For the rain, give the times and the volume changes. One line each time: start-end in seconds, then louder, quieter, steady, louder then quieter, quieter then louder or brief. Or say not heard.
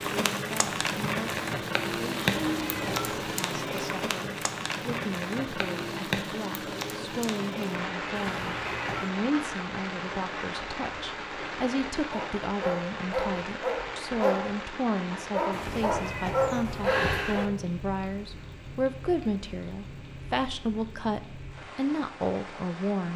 0.0-23.1 quieter.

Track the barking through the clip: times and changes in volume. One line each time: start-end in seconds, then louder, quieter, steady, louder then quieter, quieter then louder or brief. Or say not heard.
12.1-17.6 quieter then louder.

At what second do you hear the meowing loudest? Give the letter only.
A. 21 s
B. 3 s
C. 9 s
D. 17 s
D.